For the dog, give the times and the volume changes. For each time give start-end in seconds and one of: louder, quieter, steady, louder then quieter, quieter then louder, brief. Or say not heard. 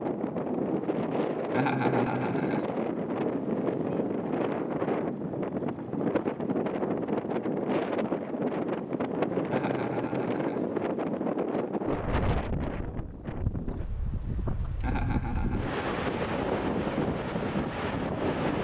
not heard.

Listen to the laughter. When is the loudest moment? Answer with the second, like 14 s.
2 s.